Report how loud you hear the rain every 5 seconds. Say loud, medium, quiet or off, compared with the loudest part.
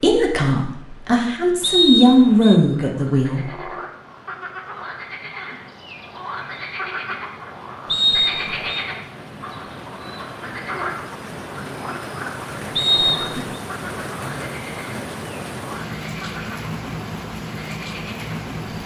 quiet, medium, loud, loud.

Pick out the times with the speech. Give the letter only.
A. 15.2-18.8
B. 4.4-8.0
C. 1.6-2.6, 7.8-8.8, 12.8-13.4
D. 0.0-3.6
D.